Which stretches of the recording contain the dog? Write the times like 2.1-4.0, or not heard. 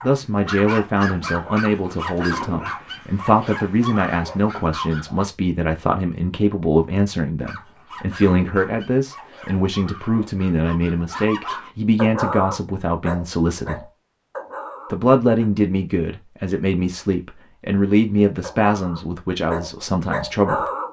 0.0-5.2, 7.4-15.5, 18.2-20.8.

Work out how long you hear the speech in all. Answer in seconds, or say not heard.
20 s.